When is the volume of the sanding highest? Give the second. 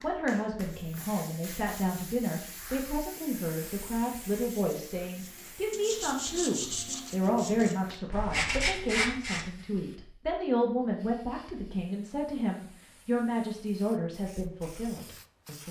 9 s.